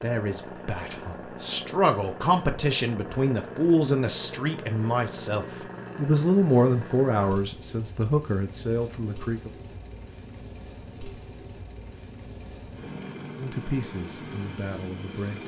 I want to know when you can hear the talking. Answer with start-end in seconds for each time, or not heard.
0.0-9.5, 13.3-15.4.